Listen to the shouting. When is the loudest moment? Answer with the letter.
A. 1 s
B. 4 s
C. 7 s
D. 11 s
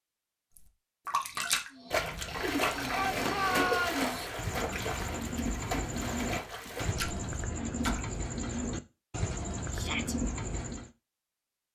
B.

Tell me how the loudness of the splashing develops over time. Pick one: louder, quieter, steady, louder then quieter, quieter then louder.
quieter.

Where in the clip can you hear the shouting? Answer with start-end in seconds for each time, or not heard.
2.9-4.0, 9.7-10.2.